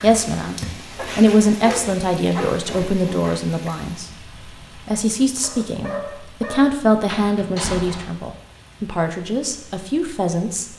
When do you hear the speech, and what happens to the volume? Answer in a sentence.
The speech can be heard from 0.0 to 4.1 s, getting louder then quieter; and from 4.8 to 10.7 s, getting louder then quieter.